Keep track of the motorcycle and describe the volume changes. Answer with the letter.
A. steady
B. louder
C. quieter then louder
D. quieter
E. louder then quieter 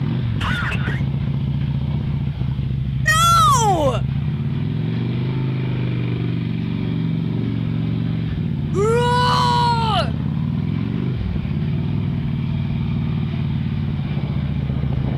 A.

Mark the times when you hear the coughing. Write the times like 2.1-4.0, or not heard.
0.3-1.1.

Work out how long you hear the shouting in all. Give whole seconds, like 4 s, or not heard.
2 s.